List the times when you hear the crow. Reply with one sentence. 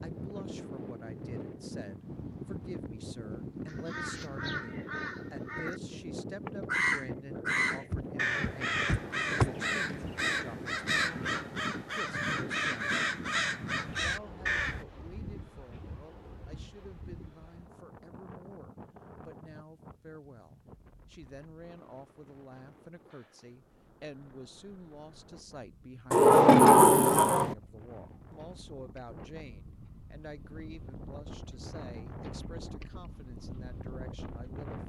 You can hear the crow from 3.6 to 5.8 s and from 6.5 to 14.8 s.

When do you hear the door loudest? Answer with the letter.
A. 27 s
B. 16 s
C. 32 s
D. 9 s
A.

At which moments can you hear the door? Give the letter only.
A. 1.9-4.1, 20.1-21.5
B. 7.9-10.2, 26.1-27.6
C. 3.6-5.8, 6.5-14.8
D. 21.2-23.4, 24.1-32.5
B.